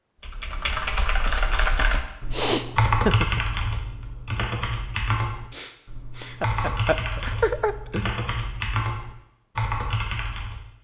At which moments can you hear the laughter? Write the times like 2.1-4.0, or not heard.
2.9-3.4, 6.4-8.1.